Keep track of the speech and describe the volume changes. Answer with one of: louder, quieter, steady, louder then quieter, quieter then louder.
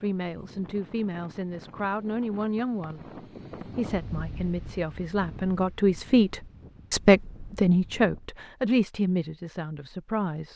louder then quieter.